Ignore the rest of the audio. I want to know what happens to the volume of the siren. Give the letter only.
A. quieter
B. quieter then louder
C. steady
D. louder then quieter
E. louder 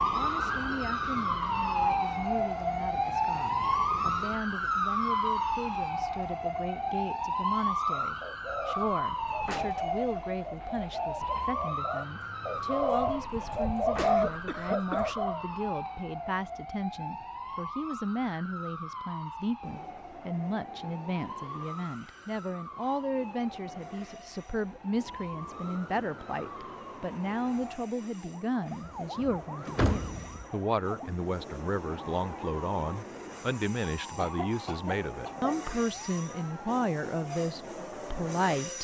A.